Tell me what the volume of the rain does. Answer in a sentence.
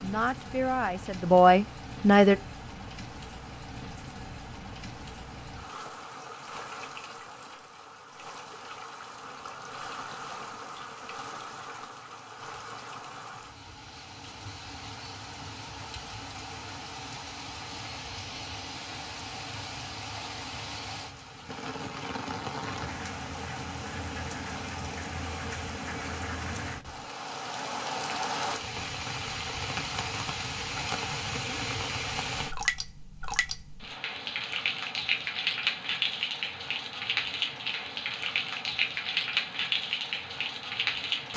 The loudness of the rain goes up.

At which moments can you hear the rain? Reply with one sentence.
You can hear the rain from 0.0 to 41.3 s.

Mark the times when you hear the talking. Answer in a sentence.
The talking can be heard from 0.0 to 2.4 s.